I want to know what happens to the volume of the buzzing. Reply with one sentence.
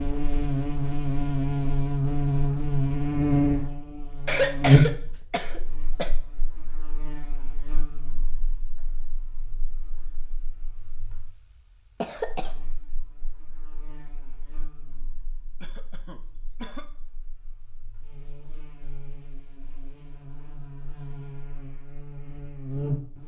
The loudness of the buzzing goes down, then up.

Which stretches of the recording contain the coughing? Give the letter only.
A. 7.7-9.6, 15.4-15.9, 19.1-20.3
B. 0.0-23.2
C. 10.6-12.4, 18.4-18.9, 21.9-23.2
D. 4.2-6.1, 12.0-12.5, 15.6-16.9
D.